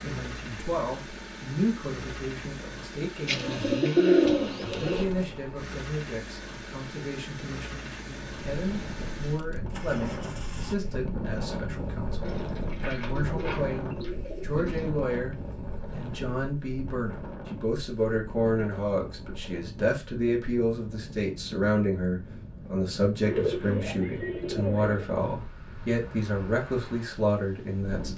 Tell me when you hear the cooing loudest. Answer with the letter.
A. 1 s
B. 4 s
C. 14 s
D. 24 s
B.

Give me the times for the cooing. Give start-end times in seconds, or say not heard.
3.2-5.0, 12.2-14.9, 23.2-25.1.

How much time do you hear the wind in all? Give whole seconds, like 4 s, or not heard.
20 s.